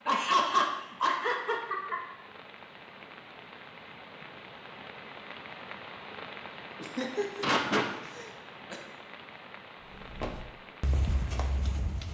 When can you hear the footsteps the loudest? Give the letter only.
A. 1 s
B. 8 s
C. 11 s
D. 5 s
C.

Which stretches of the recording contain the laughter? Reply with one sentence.
You can hear the laughter from 0.1 to 2.0 s and from 6.8 to 8.8 s.